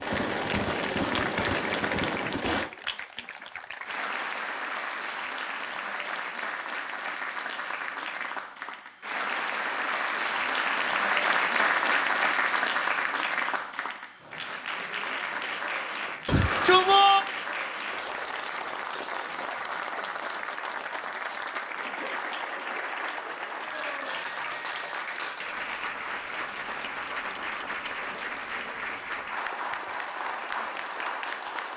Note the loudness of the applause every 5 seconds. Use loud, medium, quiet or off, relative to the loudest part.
medium, medium, loud, medium, medium, medium, medium.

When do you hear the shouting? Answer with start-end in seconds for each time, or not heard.
16.2-17.2.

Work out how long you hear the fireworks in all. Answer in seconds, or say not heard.
3 s.